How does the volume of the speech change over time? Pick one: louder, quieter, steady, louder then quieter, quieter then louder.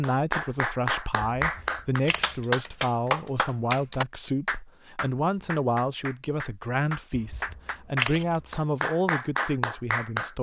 steady.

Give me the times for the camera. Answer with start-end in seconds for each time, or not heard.
1.4-2.4, 7.1-8.5.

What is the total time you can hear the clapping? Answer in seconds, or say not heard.
10 s.